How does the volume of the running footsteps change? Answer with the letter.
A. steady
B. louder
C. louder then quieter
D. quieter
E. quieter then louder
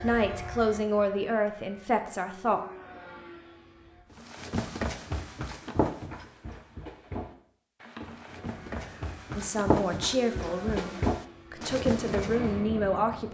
E.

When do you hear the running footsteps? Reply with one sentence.
You can hear the running footsteps from 4.2 to 12.6 s.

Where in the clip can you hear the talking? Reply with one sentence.
The talking can be heard from 0.0 to 2.6 s and from 9.3 to 13.2 s.